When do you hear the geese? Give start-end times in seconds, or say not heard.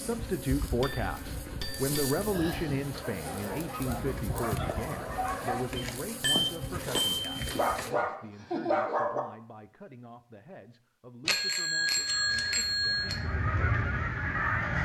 11.9-14.8.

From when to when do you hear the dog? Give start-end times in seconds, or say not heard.
2.9-5.6, 7.5-9.2.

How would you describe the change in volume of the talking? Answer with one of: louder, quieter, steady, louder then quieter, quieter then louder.
quieter.